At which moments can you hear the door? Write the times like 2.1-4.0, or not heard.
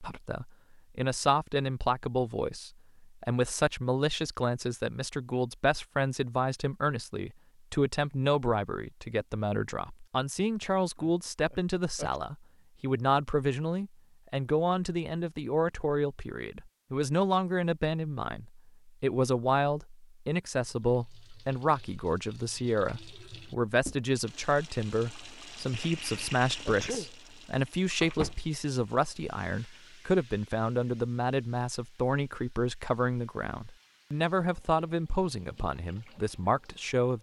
not heard.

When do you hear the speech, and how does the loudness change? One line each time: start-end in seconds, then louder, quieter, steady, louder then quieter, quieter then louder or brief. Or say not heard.
0.0-37.1 steady.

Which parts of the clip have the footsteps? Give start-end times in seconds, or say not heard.
not heard.